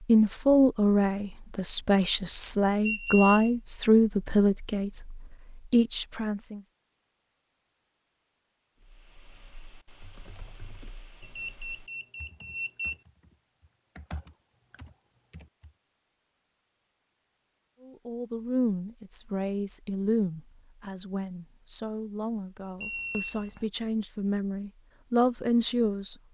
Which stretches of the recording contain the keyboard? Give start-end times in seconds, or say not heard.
8.8-15.7.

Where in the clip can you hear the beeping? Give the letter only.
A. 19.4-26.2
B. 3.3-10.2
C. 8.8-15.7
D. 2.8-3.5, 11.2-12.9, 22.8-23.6
D.